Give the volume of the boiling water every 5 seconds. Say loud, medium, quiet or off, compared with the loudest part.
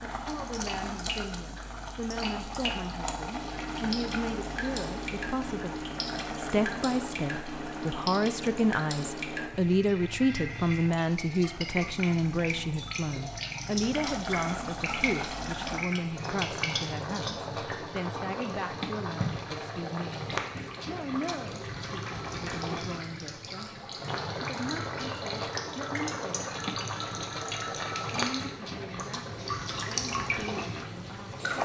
loud, medium, medium, loud, loud, loud, loud.